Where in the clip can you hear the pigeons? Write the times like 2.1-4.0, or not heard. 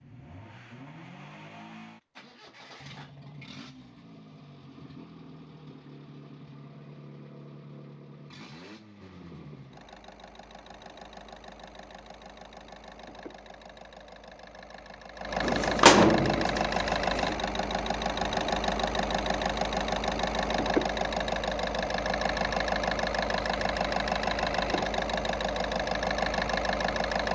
15.4-17.4.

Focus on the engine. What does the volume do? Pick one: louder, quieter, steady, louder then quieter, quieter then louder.
louder.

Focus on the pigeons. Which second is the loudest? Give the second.
16 s.